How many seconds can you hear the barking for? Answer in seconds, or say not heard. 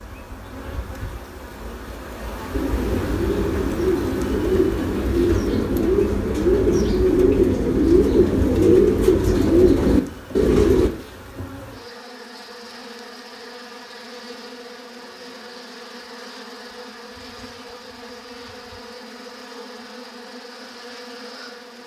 not heard.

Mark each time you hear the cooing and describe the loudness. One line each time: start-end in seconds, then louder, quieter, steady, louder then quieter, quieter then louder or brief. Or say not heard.
2.5-10.9 louder.